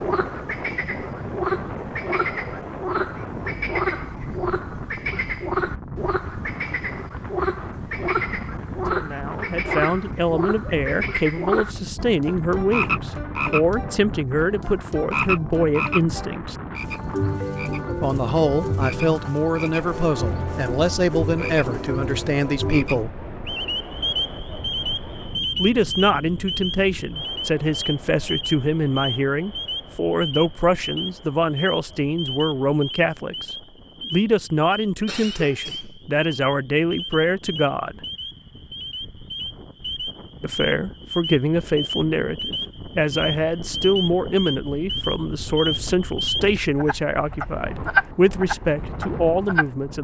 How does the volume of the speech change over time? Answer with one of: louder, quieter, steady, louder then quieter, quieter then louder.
steady.